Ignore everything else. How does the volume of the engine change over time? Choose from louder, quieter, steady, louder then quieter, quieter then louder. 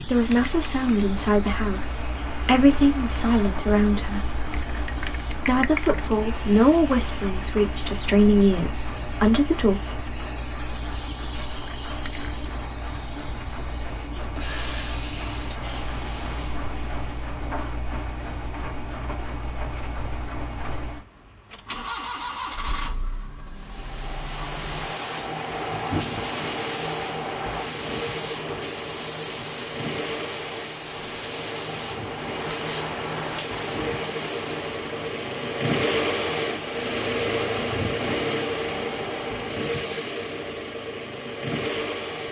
louder.